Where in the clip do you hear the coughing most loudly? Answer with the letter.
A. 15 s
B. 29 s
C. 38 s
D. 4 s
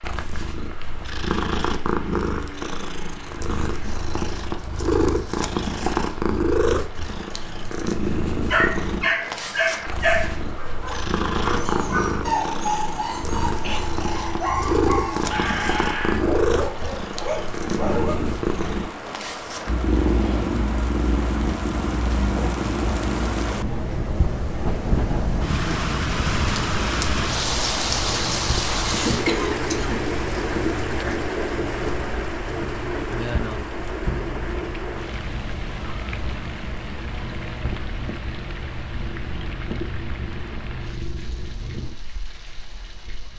B.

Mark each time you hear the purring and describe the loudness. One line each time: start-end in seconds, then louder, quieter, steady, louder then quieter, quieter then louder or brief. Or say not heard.
0.0-43.3 quieter.